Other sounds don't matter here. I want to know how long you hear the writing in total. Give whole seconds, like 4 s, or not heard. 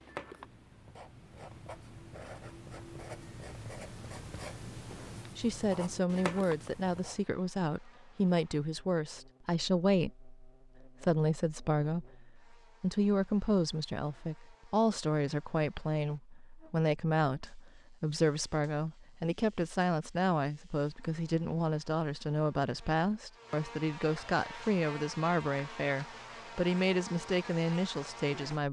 7 s.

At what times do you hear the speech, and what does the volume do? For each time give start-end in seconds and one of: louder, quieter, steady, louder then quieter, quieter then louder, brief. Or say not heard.
5.3-28.6 steady.